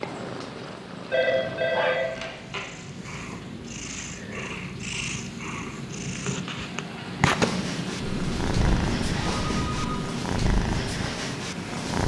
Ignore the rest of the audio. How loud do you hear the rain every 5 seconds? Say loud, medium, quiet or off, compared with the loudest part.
medium, loud, loud.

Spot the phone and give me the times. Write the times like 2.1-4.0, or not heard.
1.1-2.6, 8.0-10.0.